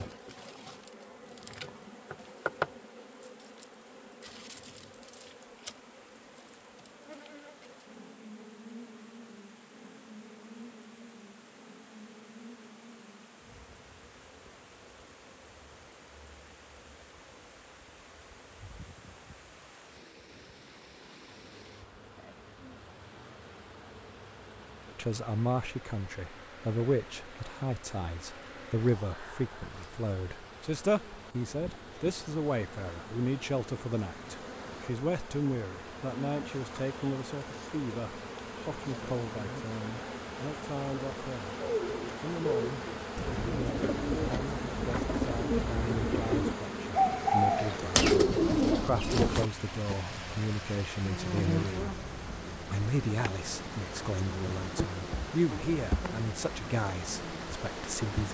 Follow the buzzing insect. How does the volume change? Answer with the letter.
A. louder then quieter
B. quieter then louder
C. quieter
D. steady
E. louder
B.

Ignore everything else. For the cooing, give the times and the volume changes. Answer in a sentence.
You can hear the cooing from 41.6 to 50.0 s, getting louder.